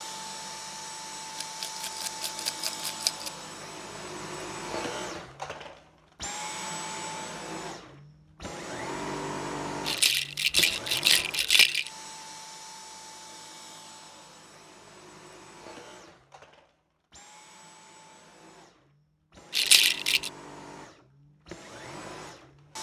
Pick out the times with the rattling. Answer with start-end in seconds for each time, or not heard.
1.4-3.3, 9.8-11.9, 19.5-20.3.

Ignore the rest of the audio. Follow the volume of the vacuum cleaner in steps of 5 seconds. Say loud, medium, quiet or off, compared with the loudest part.
loud, loud, medium, quiet, medium.